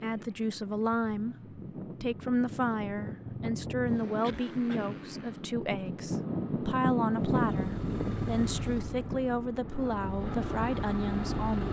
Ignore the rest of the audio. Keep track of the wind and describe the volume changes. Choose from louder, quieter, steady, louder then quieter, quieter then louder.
louder then quieter.